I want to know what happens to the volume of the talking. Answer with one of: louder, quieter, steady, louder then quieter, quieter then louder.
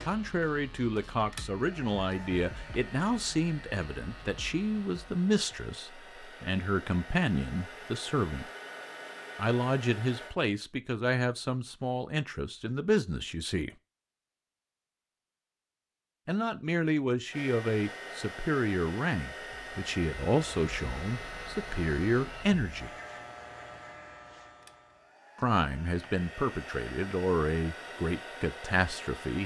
steady.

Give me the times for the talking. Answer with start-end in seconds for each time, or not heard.
0.1-8.4, 9.3-13.7, 16.2-22.9, 25.4-29.4.